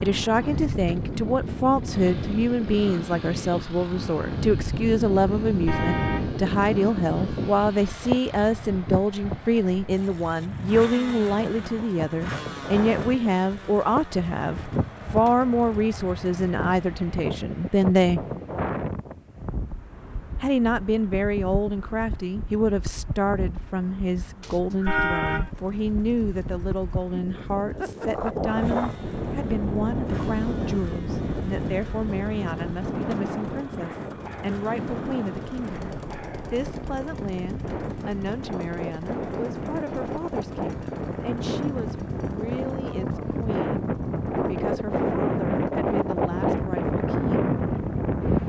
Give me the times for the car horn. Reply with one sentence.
The car horn can be heard from 5.7 to 6.3 s and from 24.9 to 25.5 s.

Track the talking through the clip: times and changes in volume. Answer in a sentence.
The talking can be heard from 0.0 to 18.2 s, at a steady volume; and from 20.4 to 47.5 s, getting quieter.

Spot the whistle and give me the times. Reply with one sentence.
You can hear the whistle from 24.4 to 25.4 s.